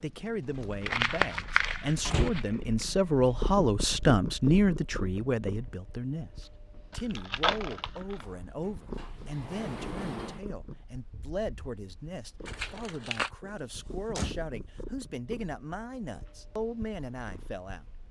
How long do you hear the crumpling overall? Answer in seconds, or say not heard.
4 s.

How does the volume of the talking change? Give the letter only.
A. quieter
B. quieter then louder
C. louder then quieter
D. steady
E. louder
A.